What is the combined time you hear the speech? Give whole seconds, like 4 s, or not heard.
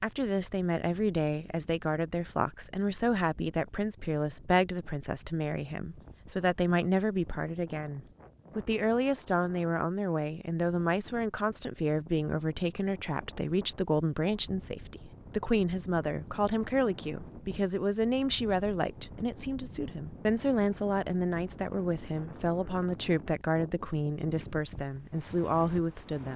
26 s.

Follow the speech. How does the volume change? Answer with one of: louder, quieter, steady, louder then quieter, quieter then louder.
steady.